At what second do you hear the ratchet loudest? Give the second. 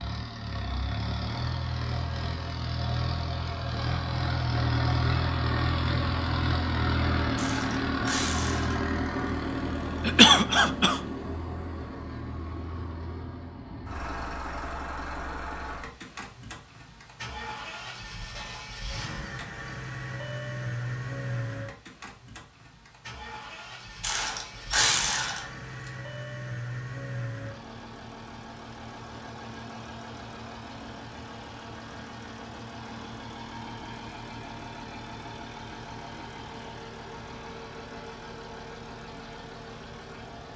25 s.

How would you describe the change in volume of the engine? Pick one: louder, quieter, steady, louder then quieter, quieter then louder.
quieter.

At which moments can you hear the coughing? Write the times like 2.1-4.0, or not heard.
10.1-11.0.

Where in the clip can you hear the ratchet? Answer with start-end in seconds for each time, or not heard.
7.3-8.8, 24.0-25.9.